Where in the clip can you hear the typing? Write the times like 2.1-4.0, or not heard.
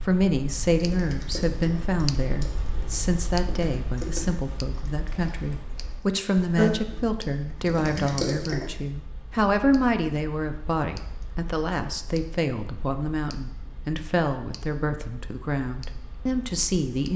0.7-5.5, 6.5-7.0, 7.5-8.7.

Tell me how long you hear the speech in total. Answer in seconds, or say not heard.
17 s.